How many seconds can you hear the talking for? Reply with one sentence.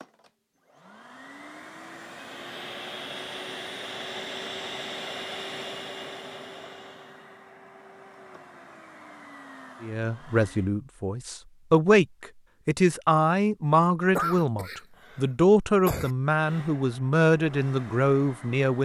You can hear the talking for 9 seconds altogether.